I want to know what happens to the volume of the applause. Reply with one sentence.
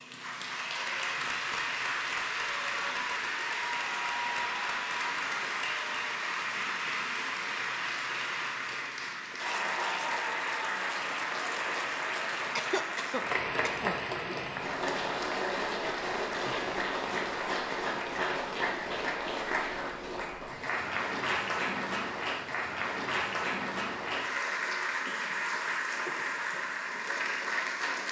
The volume of the applause stays about the same.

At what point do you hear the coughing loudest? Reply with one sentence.
The loudest moment of the coughing is at 13 seconds.